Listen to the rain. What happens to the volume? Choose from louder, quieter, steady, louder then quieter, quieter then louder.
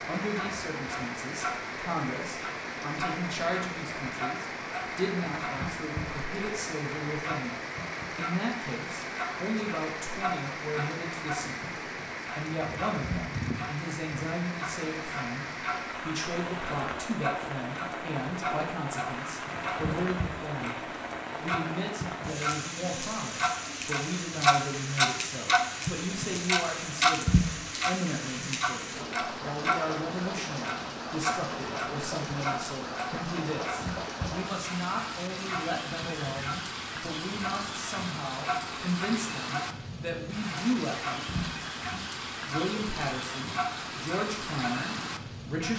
steady.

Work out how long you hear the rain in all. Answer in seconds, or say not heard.
46 s.